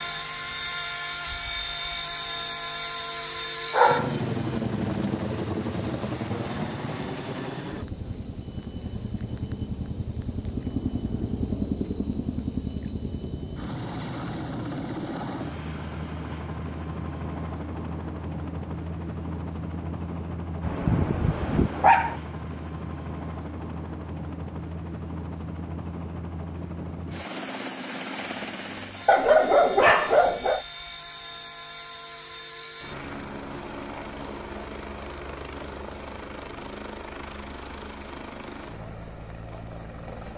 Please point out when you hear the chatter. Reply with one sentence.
You can't hear the chatter here.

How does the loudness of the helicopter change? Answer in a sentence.
The volume of the helicopter goes down.